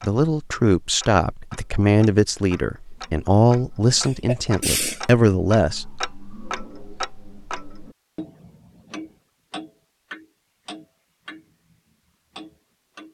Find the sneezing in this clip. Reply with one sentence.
The sneezing can be heard from 4.0 to 5.0 s.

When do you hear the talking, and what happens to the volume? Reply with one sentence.
You can hear the talking from 0.0 to 5.9 s, at a steady volume.